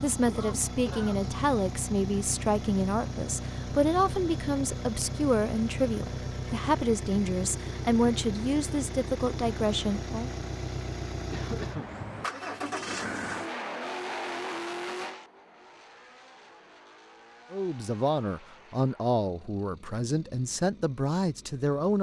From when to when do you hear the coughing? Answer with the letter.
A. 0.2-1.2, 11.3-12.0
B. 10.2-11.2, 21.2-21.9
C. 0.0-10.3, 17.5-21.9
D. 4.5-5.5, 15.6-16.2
A.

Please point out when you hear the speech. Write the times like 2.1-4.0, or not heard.
0.0-10.3, 17.5-21.9.